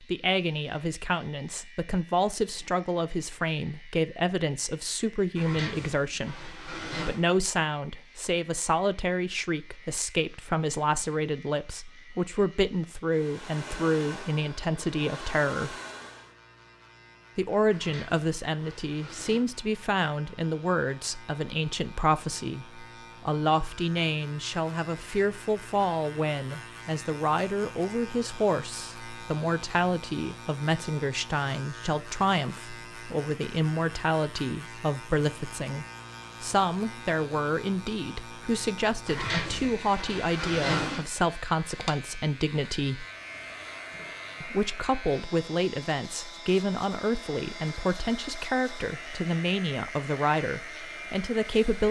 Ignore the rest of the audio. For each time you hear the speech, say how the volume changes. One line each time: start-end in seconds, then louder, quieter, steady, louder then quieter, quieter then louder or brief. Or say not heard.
0.1-15.8 steady
17.4-43.0 steady
44.4-51.8 steady.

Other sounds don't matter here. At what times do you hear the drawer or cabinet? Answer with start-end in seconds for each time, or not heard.
5.3-7.2, 17.7-19.4, 39.0-41.0.